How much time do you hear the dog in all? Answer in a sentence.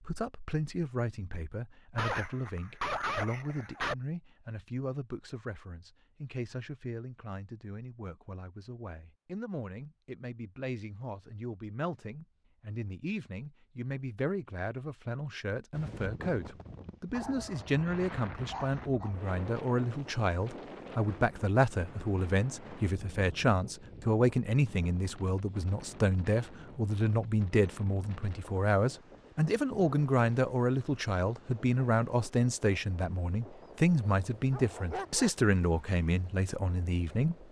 You can hear the dog for 5 seconds altogether.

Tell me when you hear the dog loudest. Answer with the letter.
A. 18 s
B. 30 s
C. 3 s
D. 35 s
C.